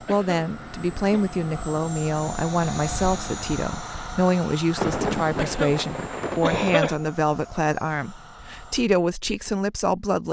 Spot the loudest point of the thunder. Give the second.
5 s.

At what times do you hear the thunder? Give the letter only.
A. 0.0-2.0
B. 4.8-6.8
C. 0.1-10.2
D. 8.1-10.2
B.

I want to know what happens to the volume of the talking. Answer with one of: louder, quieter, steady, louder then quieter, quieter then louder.
steady.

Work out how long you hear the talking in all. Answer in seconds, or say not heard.
10 s.